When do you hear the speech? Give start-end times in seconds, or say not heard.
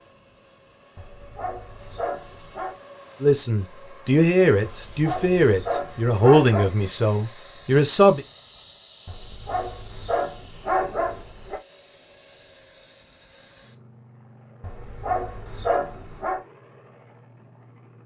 3.2-8.2.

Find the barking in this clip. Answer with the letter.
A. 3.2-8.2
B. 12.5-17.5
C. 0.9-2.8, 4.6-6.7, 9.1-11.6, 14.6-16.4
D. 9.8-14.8
C.